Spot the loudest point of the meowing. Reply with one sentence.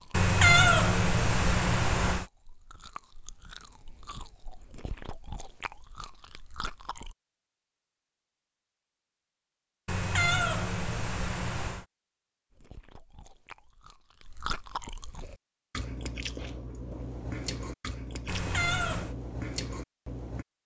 The volume of the meowing peaks at 1 second.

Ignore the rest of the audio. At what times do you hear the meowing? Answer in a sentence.
You can hear the meowing from 0.1 to 2.2 s, from 9.8 to 11.8 s and from 18.2 to 19.1 s.